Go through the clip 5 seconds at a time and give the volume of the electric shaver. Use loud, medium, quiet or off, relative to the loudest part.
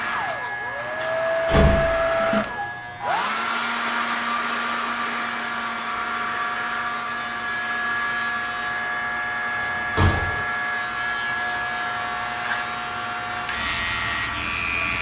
medium, loud, loud.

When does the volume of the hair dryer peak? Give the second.
2 s.